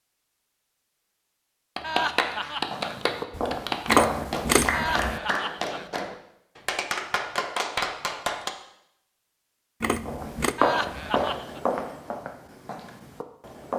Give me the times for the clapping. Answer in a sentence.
You can hear the clapping from 1.8 to 8.5 s.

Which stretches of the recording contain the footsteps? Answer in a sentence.
You can hear the footsteps from 2.7 to 4.5 s and from 10.1 to 13.7 s.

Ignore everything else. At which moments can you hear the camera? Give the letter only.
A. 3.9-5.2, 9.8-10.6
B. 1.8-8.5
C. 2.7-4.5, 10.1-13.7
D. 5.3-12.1
A.